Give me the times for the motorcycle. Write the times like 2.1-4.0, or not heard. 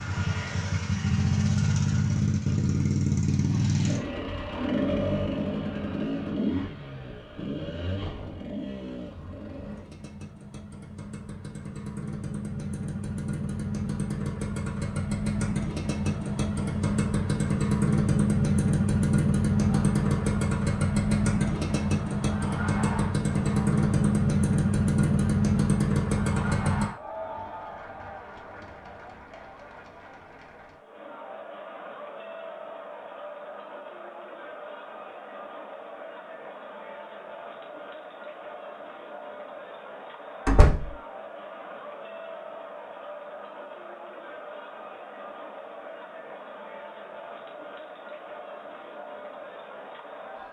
0.0-26.9.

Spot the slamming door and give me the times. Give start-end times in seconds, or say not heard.
40.5-40.9.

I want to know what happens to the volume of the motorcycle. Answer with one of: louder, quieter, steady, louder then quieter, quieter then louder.
quieter then louder.